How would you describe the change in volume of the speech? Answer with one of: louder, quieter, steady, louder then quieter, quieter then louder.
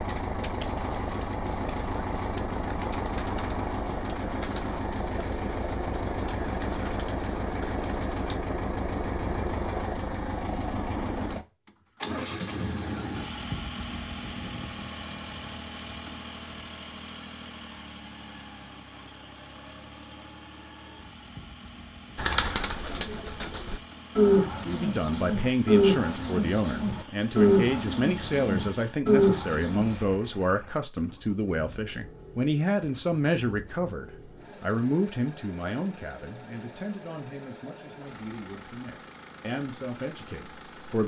quieter.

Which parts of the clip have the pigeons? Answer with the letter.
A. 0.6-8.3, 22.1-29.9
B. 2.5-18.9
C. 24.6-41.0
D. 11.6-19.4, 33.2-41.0
A.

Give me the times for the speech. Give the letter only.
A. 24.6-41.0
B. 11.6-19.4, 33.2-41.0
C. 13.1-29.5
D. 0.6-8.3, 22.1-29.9
A.